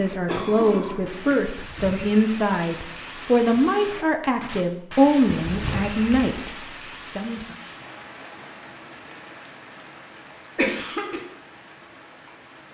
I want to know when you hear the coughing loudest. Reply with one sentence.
The loudest moment of the coughing is at 11 seconds.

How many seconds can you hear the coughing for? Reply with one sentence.
You can hear the coughing for 3 seconds altogether.